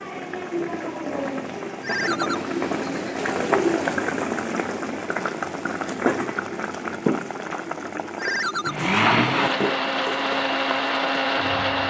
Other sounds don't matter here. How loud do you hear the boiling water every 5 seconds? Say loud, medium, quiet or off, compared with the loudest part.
loud, loud, medium.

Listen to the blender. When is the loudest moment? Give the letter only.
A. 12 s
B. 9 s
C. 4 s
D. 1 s
B.